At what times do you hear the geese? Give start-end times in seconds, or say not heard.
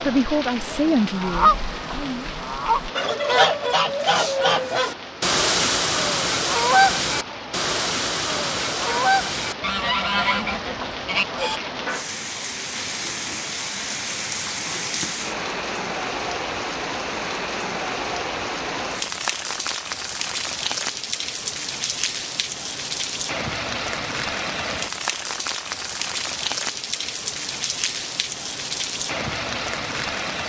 0.9-11.6.